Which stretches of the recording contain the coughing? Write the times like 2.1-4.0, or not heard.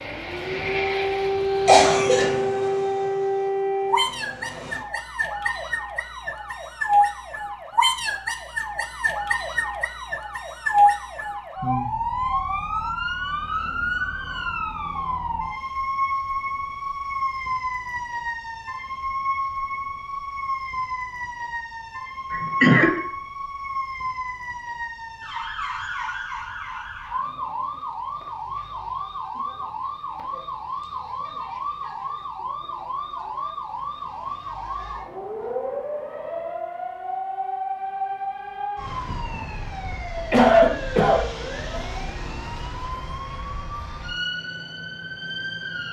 1.6-2.3, 22.3-22.9, 40.3-41.2.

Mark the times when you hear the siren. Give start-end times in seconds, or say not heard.
0.0-45.8.